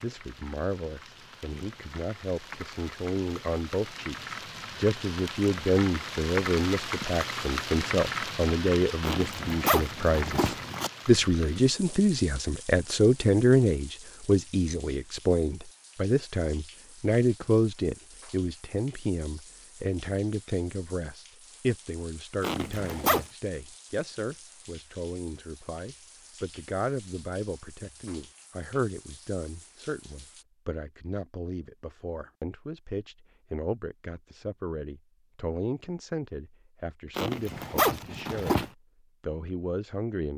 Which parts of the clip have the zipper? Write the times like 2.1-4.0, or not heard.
9.0-10.9, 22.4-23.2, 37.1-38.7.